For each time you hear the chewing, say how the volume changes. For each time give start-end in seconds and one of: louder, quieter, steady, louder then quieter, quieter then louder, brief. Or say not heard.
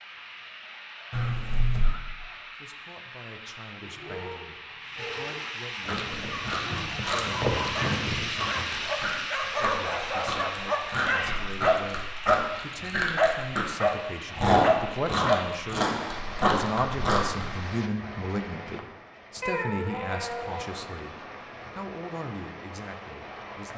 5.8-17.5 louder.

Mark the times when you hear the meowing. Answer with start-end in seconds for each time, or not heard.
1.1-2.0, 11.1-11.6, 19.4-20.7.